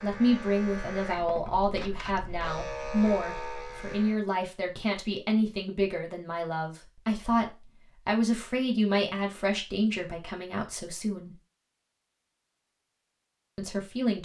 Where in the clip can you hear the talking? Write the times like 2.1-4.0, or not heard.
0.0-11.3, 13.6-14.1.